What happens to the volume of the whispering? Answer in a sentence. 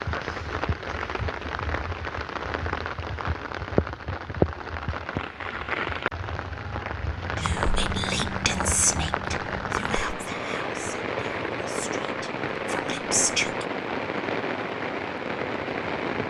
The volume of the whispering goes down, then up.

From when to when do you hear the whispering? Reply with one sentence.
You can hear the whispering from 7.4 to 13.7 s.